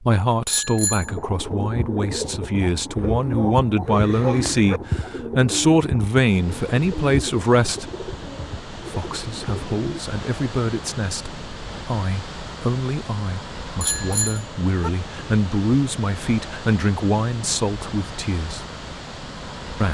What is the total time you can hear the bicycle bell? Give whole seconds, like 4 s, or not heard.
2 s.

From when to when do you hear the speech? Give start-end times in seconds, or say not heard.
0.0-7.9, 8.8-18.6.